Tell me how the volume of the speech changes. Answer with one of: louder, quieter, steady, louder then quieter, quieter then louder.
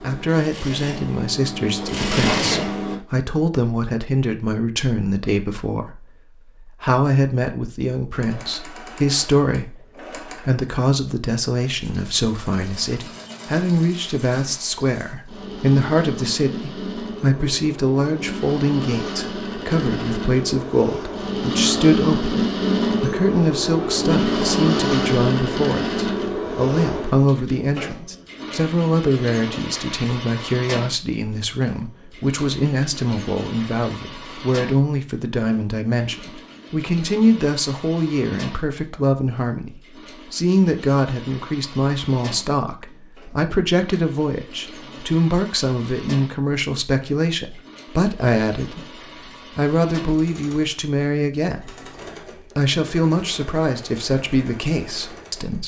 steady.